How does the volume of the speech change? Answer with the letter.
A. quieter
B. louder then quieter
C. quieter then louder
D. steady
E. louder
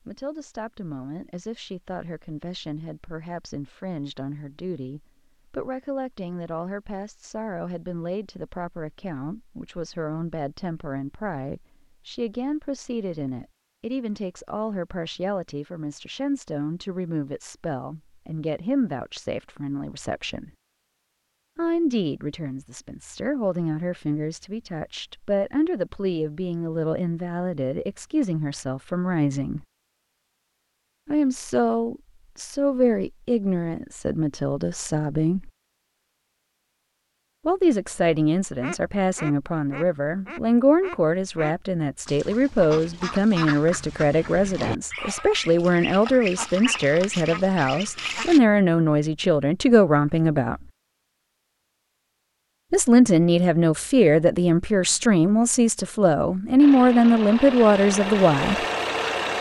E.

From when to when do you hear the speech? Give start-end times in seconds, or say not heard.
0.1-20.5, 21.6-29.6, 31.1-35.5, 37.5-50.6, 52.7-58.5.